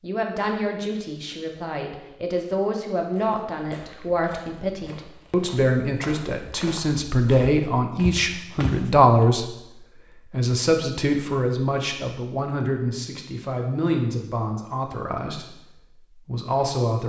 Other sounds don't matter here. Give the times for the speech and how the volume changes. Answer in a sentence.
The speech can be heard from 0.0 to 17.0 s, getting louder then quieter.